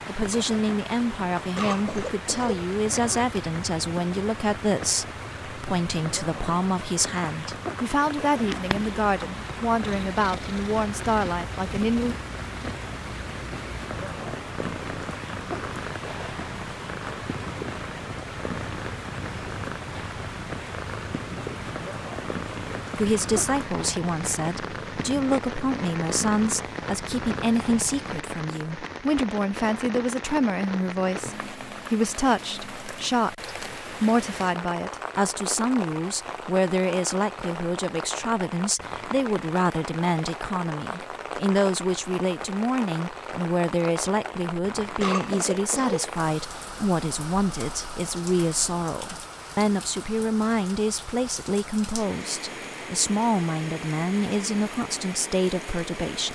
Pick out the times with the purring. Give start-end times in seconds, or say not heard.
8.3-28.2.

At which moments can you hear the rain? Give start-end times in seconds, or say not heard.
0.0-56.3.